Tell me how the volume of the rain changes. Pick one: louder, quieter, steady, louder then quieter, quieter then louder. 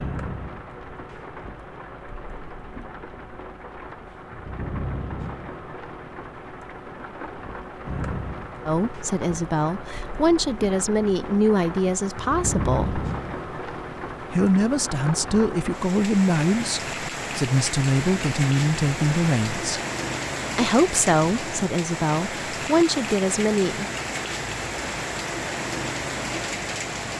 louder.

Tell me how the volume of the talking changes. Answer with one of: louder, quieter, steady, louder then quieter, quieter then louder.
steady.